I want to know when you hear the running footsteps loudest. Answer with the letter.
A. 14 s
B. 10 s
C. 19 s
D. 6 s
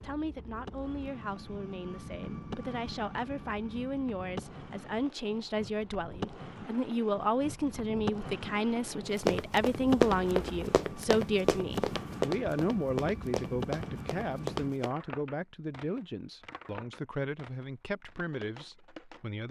B.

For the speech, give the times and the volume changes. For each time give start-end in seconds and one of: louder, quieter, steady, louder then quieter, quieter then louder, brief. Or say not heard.
0.0-19.4 louder then quieter.